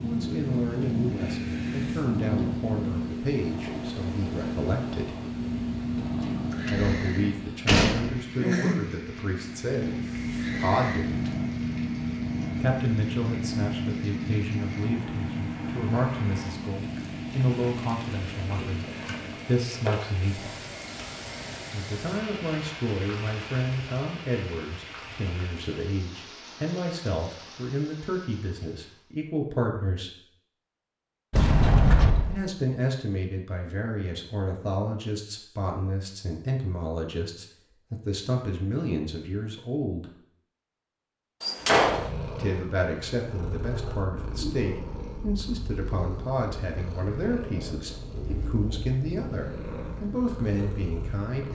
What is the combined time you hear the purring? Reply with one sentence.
You can hear the purring for 29 seconds altogether.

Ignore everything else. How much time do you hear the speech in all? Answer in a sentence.
You can hear the speech for 43 seconds altogether.